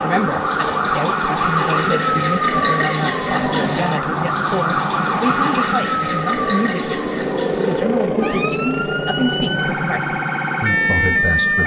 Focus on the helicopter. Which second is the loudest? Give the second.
8 s.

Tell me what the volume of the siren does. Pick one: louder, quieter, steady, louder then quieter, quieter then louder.
quieter then louder.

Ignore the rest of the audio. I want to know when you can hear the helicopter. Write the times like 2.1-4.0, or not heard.
0.0-11.6.